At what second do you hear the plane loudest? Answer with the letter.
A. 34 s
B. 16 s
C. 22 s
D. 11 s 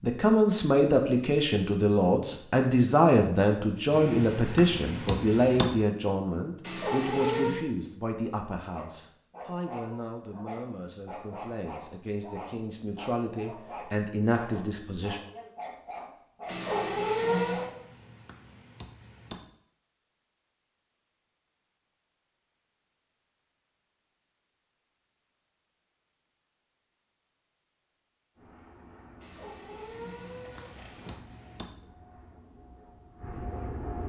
A.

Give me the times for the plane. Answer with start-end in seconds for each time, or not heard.
28.4-34.0.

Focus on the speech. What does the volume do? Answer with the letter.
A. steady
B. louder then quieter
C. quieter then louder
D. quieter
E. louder
C.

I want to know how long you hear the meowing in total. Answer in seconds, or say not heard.
4 s.